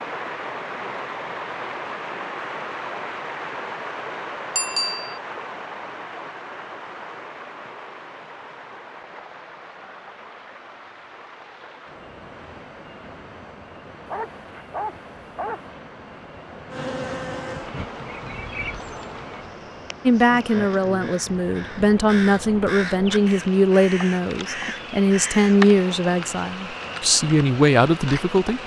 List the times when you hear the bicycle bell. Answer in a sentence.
You can hear the bicycle bell from 4.5 to 5.2 s.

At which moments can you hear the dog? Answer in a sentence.
The dog can be heard from 14.1 to 15.7 s.